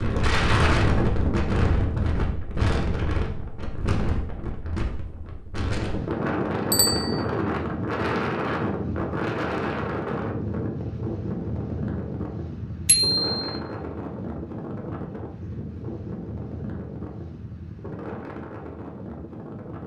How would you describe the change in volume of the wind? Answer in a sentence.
The loudness of the wind goes down.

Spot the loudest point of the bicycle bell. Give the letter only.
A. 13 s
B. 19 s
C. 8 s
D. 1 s
A.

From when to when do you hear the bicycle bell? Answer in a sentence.
You can hear the bicycle bell from 6.7 to 7.2 s and from 12.8 to 13.5 s.